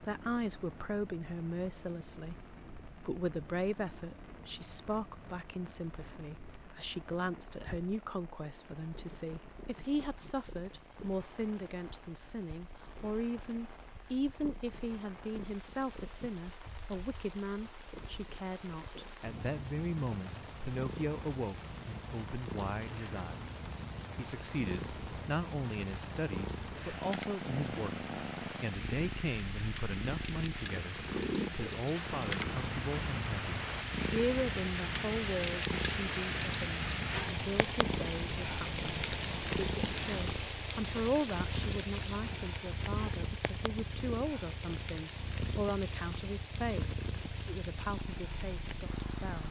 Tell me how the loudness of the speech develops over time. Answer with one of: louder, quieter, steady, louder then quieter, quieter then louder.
steady.